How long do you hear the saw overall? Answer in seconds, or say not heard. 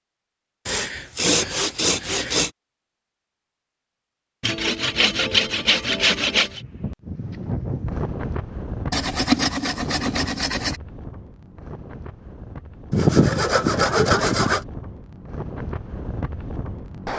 8 s.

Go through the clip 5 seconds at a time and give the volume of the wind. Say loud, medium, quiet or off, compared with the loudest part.
off, loud, medium, loud.